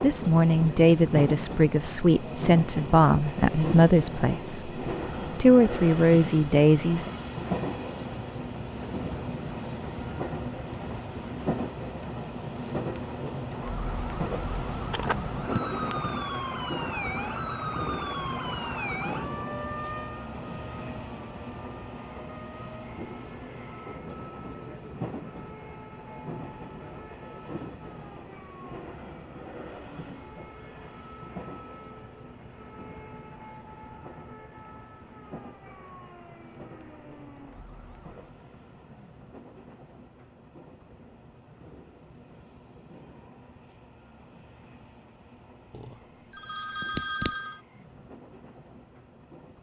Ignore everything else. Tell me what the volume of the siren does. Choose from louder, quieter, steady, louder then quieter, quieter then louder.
quieter.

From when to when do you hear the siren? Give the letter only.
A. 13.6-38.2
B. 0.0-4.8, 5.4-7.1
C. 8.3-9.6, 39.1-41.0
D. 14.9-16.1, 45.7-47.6
A.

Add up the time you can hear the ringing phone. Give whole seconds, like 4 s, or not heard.
3 s.